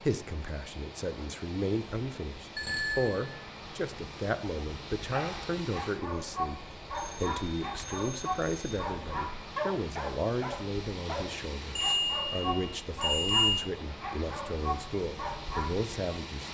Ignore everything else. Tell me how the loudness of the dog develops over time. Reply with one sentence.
The loudness of the dog stays about the same.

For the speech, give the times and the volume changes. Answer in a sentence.
You can hear the speech from 0.0 to 16.4 s, at a steady volume.